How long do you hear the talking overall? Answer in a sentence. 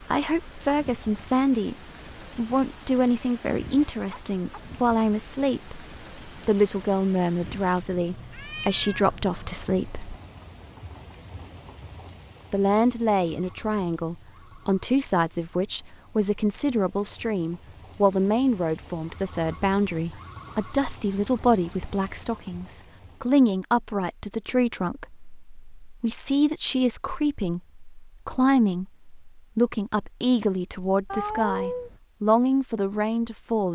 You can hear the talking for 31 seconds altogether.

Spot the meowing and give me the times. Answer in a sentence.
The meowing can be heard from 8.3 to 9.2 s and from 31.1 to 32.0 s.